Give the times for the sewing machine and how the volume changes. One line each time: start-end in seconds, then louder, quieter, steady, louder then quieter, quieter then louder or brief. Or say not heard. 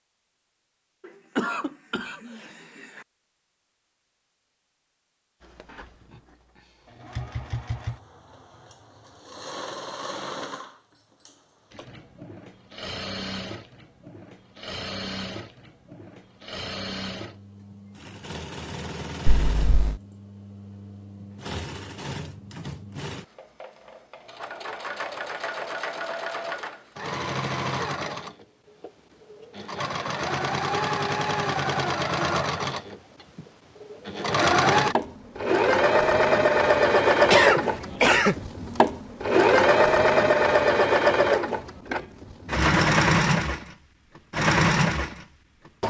5.4-45.8 louder.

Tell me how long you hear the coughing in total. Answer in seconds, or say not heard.
4 s.